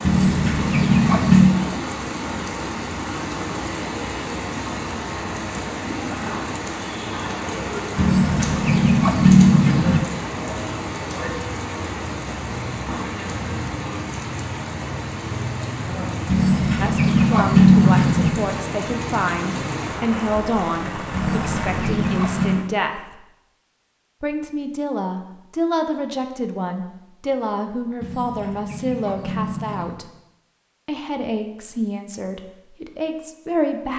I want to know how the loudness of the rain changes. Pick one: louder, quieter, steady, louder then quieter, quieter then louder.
steady.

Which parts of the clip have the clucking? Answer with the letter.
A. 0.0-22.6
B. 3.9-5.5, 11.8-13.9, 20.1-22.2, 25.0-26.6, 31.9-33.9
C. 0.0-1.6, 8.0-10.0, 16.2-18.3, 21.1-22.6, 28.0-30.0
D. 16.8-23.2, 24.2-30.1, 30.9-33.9
C.